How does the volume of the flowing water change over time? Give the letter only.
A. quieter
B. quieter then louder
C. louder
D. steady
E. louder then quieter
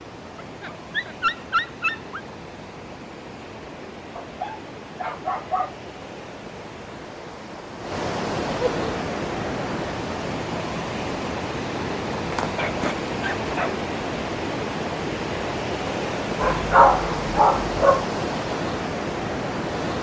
C.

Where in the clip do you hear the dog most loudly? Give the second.
17 s.